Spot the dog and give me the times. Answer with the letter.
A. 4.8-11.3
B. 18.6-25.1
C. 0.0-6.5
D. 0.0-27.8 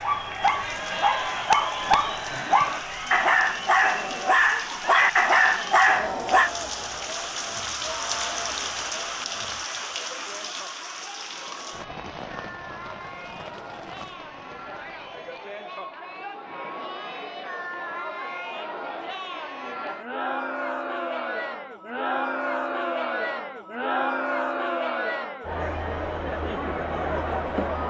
C.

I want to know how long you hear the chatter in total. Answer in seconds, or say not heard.
28 s.